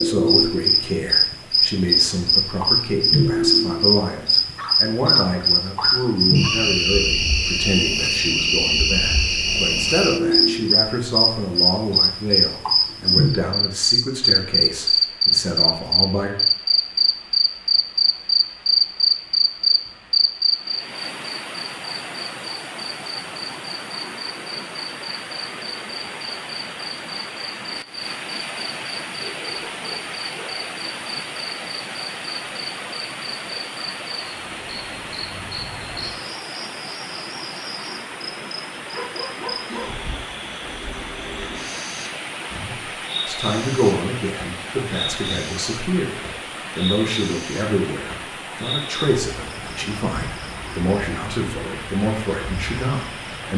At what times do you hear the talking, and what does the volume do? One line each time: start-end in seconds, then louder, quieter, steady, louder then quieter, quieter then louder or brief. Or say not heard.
0.0-16.4 steady
42.5-53.5 steady.